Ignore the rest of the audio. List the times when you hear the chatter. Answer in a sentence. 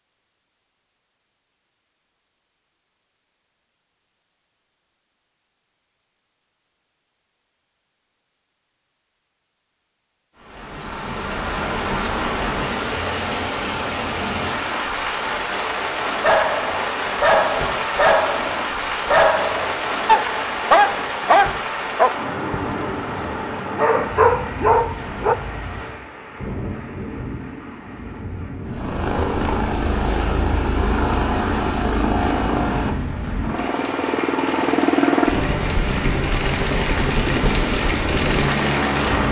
You can't hear the chatter here.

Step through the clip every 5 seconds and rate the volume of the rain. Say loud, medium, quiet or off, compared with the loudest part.
off, off, loud, loud, loud, medium, medium, loud.